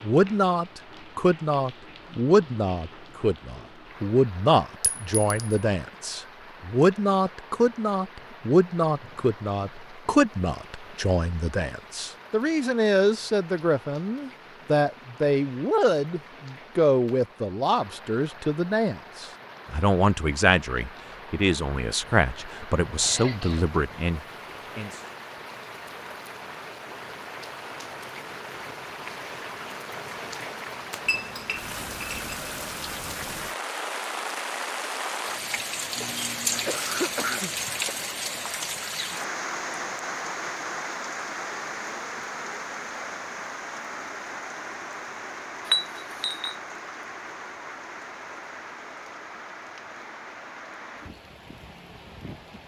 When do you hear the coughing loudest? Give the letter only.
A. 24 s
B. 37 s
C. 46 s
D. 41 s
B.